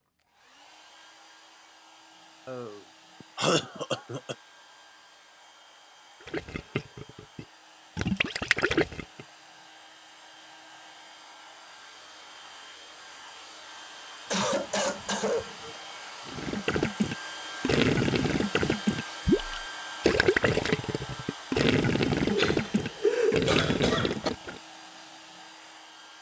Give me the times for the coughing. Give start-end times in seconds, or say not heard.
2.5-4.3, 14.3-15.8, 22.3-24.3.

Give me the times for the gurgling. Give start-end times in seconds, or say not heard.
6.2-9.2, 16.2-24.6.